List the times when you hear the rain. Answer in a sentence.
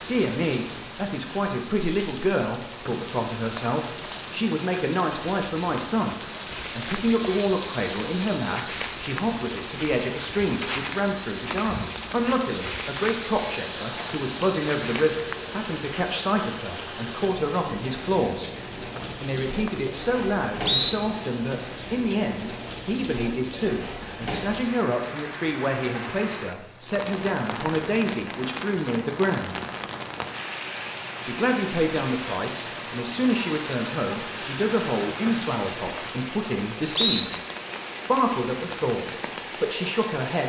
The rain can be heard from 0.0 to 40.4 s.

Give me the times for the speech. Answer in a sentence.
You can hear the speech from 0.0 to 18.5 s, from 19.2 to 29.6 s, from 31.2 to 37.3 s and from 38.0 to 40.4 s.